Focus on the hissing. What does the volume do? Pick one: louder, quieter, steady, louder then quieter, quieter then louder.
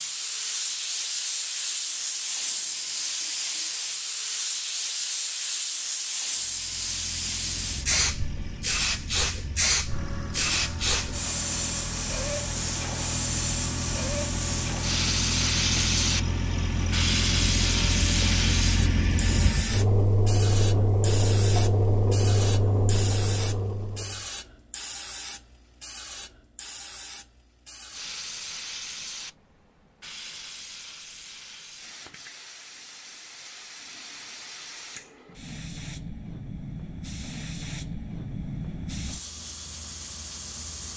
quieter.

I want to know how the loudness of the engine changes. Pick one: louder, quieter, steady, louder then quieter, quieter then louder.
louder.